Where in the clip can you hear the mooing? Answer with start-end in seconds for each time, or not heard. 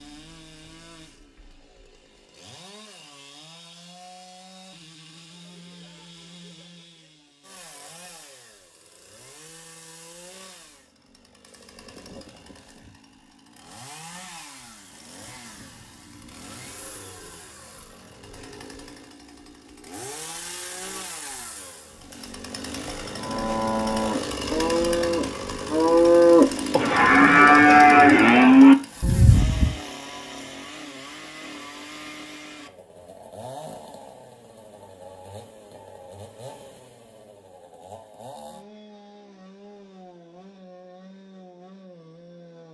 23.1-29.8.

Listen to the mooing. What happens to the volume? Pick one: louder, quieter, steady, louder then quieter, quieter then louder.
louder.